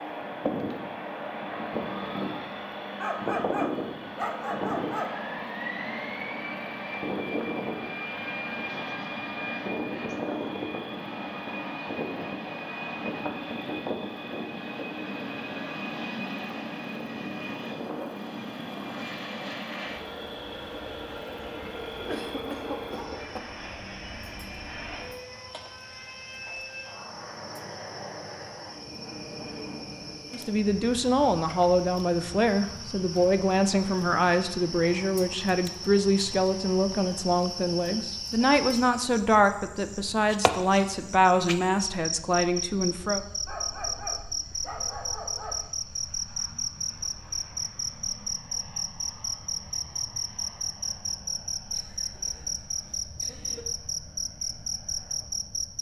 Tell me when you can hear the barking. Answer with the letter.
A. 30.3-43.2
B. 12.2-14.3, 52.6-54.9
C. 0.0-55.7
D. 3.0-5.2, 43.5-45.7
D.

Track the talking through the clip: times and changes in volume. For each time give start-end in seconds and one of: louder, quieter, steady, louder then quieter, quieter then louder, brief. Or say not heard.
30.3-43.2 steady.